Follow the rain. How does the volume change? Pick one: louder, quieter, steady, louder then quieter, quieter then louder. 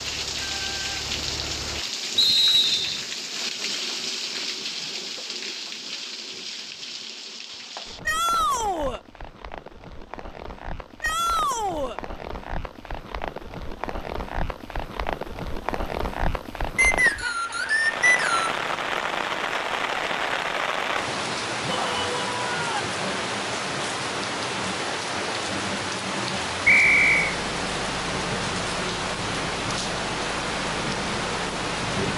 quieter then louder.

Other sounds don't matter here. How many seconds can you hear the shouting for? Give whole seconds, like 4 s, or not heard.
3 s.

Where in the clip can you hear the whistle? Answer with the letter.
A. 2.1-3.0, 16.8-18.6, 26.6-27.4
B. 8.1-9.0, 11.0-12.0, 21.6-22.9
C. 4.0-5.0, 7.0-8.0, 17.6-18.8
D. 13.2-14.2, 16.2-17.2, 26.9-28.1
A.